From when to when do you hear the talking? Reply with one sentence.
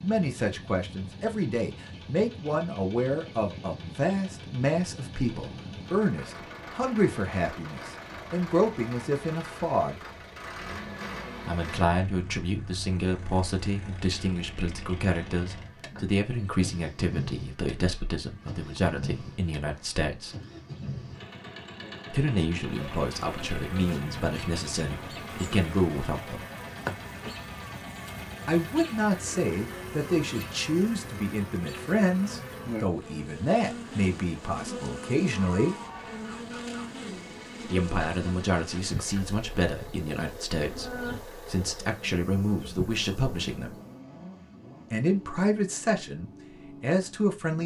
You can hear the talking from 0.0 to 10.1 s, from 11.4 to 20.4 s, from 22.1 to 26.4 s, from 28.4 to 35.8 s, from 37.6 to 43.7 s and from 44.9 to 47.6 s.